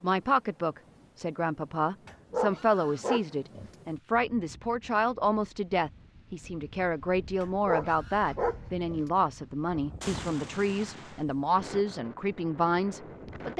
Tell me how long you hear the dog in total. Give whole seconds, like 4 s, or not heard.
3 s.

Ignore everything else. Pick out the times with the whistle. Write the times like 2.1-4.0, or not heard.
not heard.